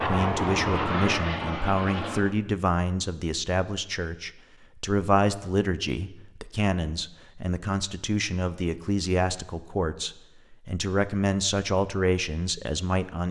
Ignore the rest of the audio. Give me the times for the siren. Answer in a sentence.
You can't hear the siren here.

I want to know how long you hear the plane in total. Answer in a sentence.
You can hear the plane for 2 seconds altogether.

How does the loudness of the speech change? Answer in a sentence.
The loudness of the speech stays about the same.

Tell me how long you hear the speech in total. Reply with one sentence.
The speech can be heard for 13 seconds in total.